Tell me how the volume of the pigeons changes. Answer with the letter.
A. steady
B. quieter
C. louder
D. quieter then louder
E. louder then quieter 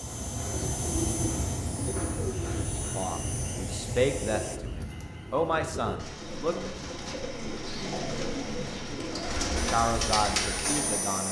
D.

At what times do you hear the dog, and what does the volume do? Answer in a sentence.
The dog can't be heard in this clip.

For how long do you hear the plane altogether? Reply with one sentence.
The plane can be heard for 6 seconds in total.